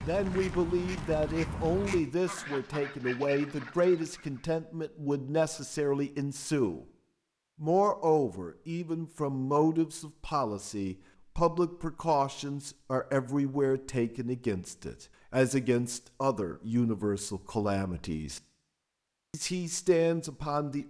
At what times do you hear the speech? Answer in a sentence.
You can hear the speech from 0.0 to 6.8 s, from 7.6 to 18.4 s and from 19.3 to 20.8 s.